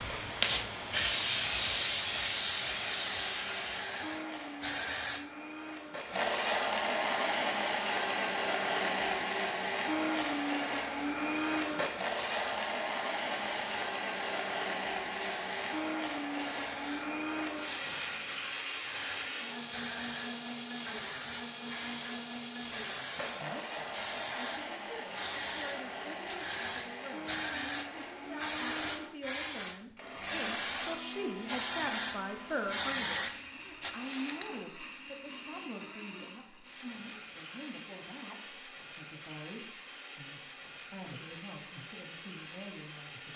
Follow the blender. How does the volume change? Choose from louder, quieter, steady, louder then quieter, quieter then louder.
quieter.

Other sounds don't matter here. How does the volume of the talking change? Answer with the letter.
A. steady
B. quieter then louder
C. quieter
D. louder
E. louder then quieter
E.